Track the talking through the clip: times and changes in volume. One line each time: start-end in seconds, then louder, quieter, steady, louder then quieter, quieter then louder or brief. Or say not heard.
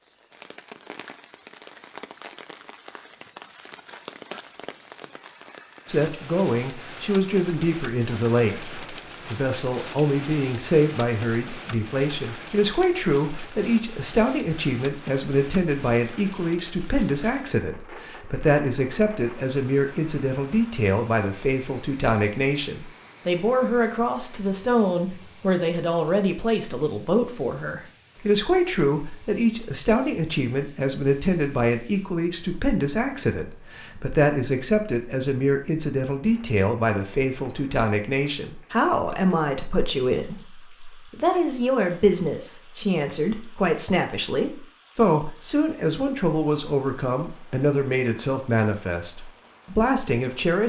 5.8-50.6 steady.